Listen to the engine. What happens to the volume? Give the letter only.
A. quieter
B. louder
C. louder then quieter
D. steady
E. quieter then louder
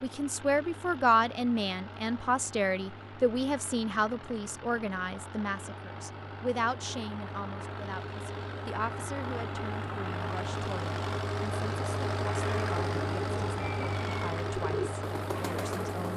B.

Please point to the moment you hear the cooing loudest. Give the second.
15 s.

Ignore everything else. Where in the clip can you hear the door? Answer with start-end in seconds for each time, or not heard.
not heard.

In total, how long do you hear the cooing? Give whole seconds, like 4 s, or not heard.
3 s.